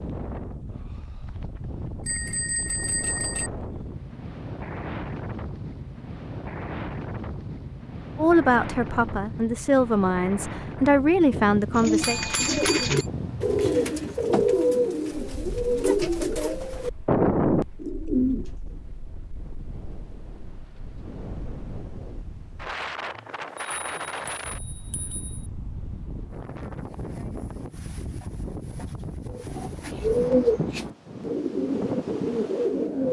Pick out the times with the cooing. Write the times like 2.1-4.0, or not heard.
11.7-18.8, 29.3-33.0.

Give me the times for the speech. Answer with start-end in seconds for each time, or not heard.
8.2-12.2.